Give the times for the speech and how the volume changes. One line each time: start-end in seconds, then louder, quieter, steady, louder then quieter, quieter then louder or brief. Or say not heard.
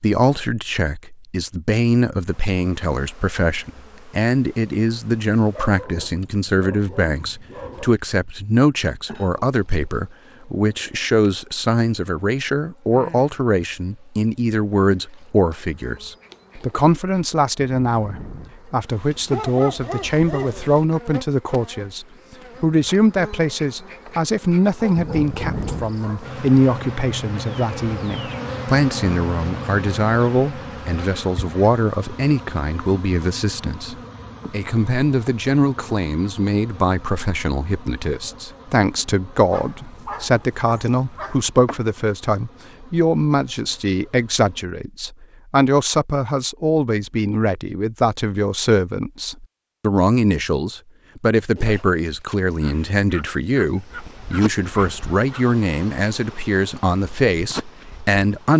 0.0-58.5 steady.